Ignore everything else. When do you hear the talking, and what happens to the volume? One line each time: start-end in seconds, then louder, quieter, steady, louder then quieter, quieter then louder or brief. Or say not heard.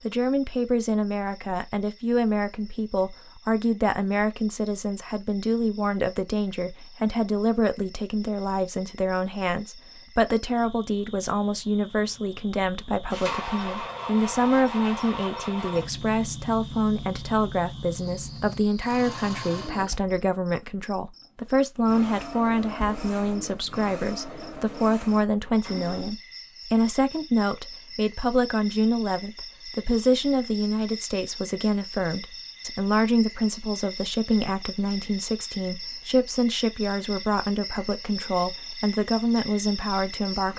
0.0-40.5 steady.